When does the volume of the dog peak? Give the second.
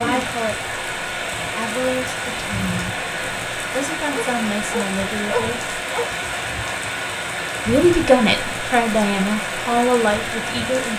5 s.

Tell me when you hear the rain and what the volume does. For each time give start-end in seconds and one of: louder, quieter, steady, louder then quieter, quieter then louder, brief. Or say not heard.
0.0-10.9 steady.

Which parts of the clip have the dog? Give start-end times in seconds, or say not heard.
4.1-6.1.